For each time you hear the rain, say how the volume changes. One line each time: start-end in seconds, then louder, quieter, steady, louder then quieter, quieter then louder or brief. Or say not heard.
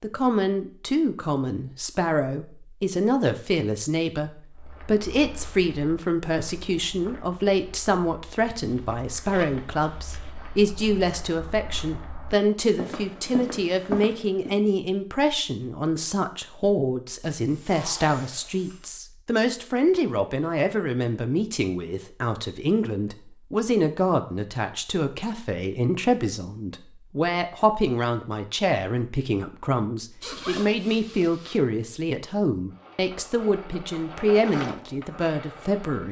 not heard.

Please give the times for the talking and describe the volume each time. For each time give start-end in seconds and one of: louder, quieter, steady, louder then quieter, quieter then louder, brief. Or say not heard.
0.0-36.0 steady.